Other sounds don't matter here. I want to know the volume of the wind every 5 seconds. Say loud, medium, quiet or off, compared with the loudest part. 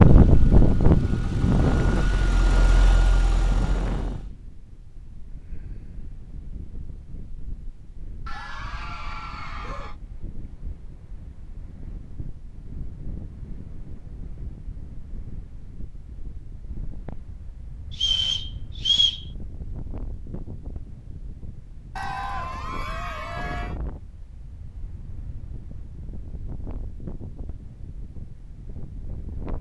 loud, quiet, quiet, quiet, quiet, quiet.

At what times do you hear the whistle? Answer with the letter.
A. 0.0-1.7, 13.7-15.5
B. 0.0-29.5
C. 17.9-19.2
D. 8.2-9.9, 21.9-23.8
C.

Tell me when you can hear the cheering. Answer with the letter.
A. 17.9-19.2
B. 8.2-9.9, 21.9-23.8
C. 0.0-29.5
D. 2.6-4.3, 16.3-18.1
B.